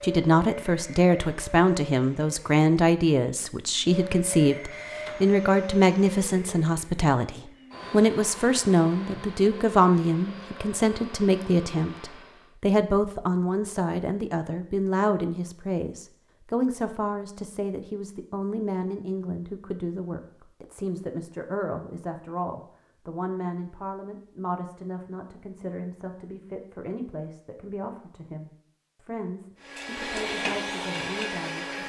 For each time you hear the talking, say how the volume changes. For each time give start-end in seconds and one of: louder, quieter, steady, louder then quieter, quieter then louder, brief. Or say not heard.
0.0-31.8 quieter.